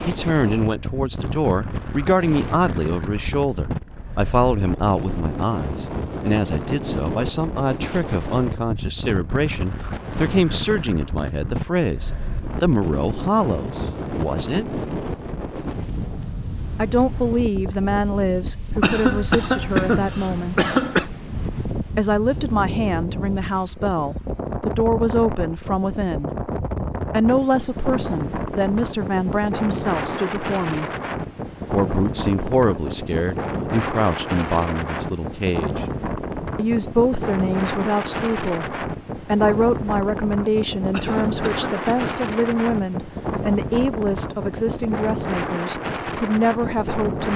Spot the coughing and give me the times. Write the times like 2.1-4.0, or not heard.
18.8-21.1, 40.9-42.2.